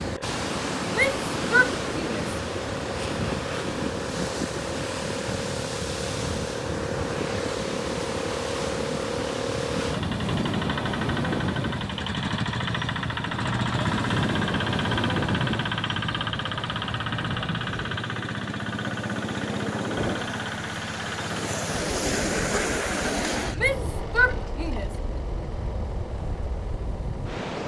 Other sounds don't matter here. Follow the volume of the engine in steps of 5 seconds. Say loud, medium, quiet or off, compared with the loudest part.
medium, loud, loud, loud, medium, medium.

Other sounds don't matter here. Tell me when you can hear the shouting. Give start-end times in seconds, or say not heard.
0.9-2.3, 23.6-24.9.